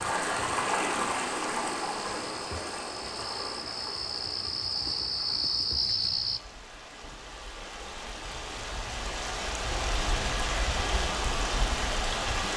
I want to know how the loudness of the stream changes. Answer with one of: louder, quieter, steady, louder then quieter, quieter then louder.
quieter then louder.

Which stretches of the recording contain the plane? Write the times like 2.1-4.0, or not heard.
not heard.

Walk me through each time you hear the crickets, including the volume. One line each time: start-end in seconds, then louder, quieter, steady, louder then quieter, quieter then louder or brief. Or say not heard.
0.0-6.4 louder.